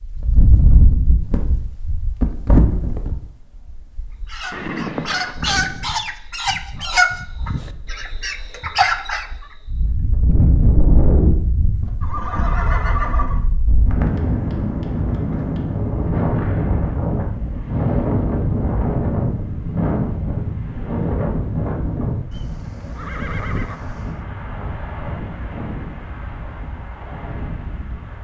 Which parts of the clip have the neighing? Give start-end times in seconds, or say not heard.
4.5-5.3, 12.0-13.4, 22.3-24.2.